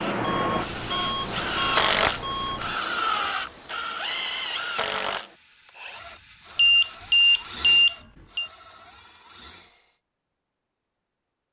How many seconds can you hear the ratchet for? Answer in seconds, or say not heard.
not heard.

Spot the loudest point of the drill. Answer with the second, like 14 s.
2 s.